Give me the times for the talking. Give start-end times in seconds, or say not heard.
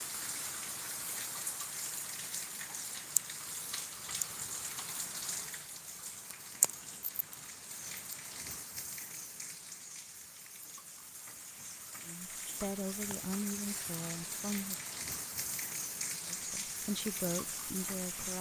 12.1-14.8, 16.2-18.3.